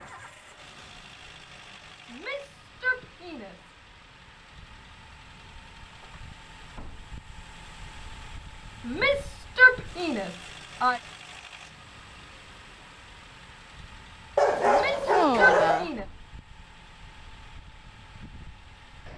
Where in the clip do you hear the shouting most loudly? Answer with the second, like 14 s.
10 s.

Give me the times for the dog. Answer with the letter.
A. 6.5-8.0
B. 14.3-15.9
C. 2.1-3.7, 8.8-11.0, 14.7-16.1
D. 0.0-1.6
B.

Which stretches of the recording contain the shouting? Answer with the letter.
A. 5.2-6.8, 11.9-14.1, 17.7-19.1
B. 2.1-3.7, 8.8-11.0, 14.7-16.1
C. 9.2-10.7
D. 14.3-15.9
B.